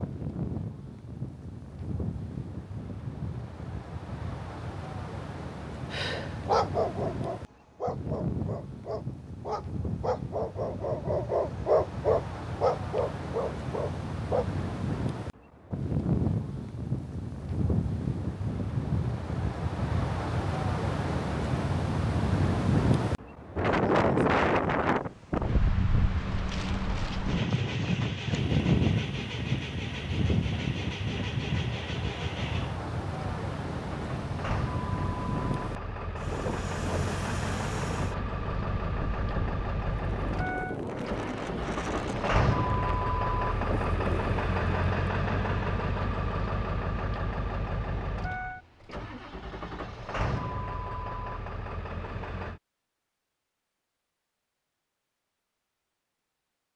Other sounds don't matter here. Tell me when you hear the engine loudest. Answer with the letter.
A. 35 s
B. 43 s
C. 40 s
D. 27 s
B.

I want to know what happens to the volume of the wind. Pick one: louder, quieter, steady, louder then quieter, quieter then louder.
louder then quieter.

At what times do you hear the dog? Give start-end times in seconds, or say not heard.
5.9-14.4.